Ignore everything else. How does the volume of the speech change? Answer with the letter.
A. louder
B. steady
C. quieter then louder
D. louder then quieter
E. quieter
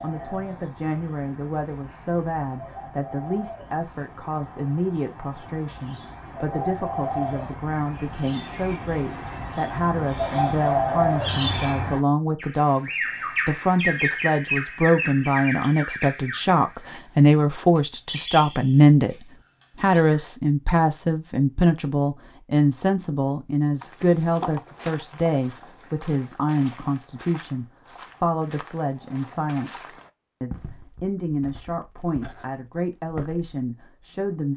D.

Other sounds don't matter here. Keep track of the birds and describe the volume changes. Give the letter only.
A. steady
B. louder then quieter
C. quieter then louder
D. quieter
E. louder
B.